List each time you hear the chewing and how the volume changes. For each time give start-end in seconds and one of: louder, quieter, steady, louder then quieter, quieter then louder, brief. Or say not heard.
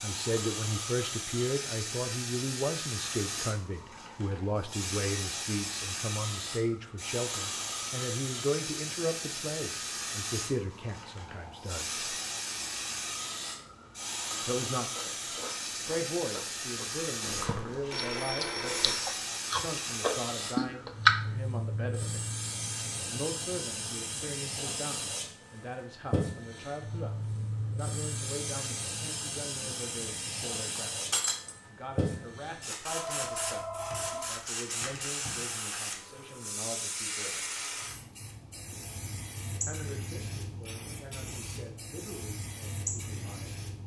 14.9-21.1 louder.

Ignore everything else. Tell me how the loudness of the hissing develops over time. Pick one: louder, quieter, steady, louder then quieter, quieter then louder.
steady.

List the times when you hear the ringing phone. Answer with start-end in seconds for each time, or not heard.
17.2-19.1, 32.9-34.5.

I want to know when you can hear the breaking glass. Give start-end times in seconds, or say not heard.
31.1-31.6.